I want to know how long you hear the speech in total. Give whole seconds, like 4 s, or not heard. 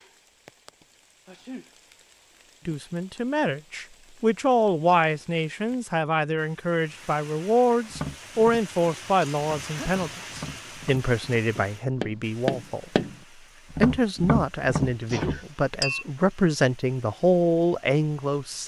15 s.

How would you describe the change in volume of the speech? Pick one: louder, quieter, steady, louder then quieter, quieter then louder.
steady.